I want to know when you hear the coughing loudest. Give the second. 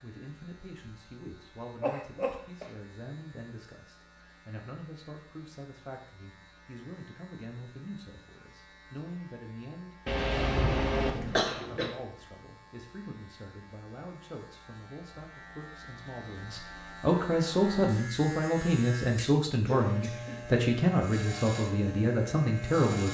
11 s.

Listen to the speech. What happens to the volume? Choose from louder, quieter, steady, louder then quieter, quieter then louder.
louder.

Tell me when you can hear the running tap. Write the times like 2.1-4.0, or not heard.
not heard.